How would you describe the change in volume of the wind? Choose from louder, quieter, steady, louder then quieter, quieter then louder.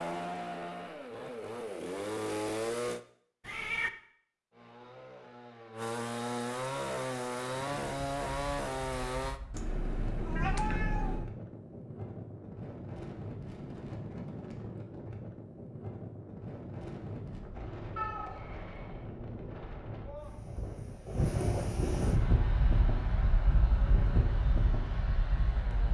louder.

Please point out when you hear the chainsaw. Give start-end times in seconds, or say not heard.
0.0-3.0, 4.5-9.4, 22.1-25.9.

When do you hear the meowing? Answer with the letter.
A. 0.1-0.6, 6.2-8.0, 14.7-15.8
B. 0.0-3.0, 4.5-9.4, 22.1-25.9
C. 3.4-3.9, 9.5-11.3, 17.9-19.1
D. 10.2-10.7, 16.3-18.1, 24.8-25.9
C.